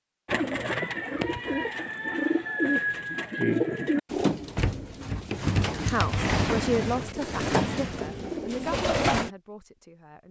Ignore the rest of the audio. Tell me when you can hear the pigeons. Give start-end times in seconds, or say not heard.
0.2-9.3.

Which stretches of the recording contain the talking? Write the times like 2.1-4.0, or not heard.
5.8-10.2.